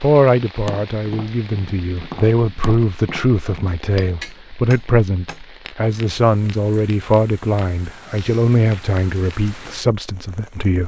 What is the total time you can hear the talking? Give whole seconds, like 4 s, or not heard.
11 s.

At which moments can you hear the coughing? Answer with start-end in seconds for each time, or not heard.
not heard.